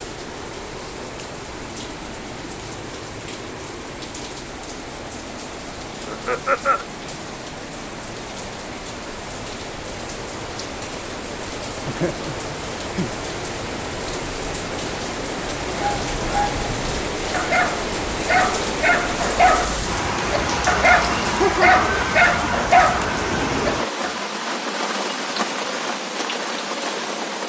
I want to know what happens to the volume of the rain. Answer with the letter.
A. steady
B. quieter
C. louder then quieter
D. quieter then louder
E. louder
E.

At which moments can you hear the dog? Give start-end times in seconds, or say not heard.
15.7-24.3.